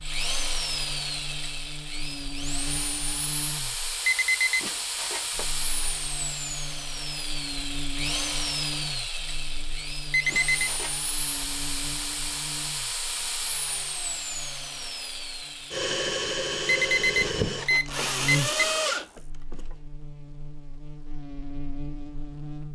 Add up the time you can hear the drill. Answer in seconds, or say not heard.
20 s.